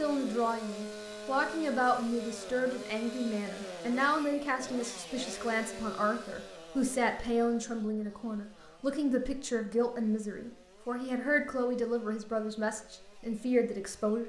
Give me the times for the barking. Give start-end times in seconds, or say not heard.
not heard.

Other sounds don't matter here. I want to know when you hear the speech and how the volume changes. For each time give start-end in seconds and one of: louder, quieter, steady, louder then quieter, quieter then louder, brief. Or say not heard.
0.0-14.2 steady.